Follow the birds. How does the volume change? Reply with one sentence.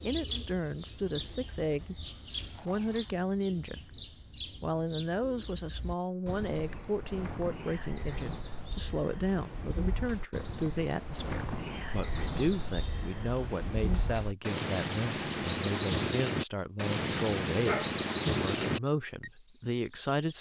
The volume of the birds goes up.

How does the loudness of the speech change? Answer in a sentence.
The loudness of the speech stays about the same.